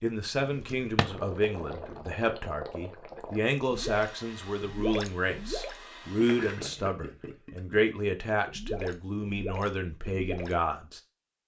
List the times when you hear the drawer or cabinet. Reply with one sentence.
You can hear the drawer or cabinet from 0.3 to 1.2 s.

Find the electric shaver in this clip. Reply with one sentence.
The electric shaver can't be heard in this clip.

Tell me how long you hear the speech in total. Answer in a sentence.
The speech can be heard for 11 seconds in total.